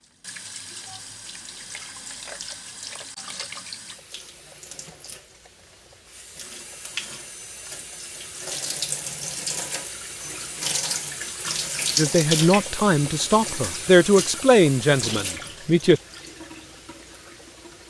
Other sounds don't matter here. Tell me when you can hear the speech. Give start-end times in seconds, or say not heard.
11.9-16.0.